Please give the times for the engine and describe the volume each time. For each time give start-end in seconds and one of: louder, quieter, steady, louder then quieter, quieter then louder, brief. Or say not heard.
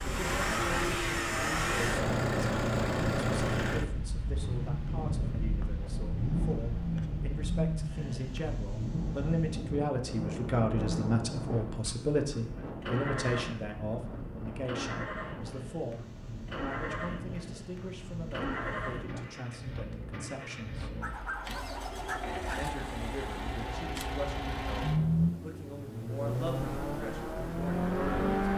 0.0-28.5 quieter then louder.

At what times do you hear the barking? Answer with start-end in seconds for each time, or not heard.
21.0-22.6.